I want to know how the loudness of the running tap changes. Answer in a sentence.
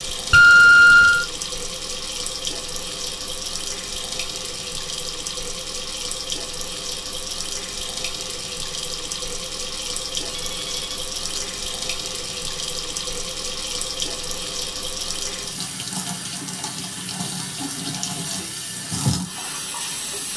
The volume of the running tap stays about the same.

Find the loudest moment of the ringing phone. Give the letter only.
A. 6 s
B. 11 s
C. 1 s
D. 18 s
C.